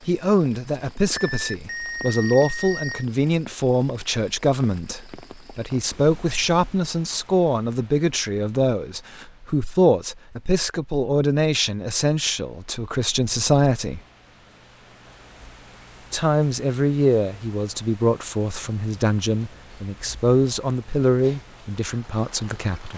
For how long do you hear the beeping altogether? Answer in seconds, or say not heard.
2 s.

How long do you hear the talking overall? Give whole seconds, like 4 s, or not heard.
21 s.